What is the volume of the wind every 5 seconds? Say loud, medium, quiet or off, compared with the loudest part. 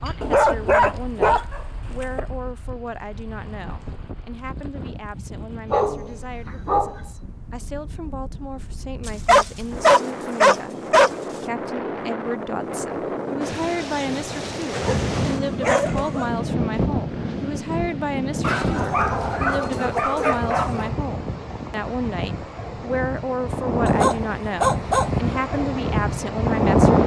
quiet, quiet, medium, medium, medium, loud.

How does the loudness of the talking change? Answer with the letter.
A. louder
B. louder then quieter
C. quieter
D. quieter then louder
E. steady
A.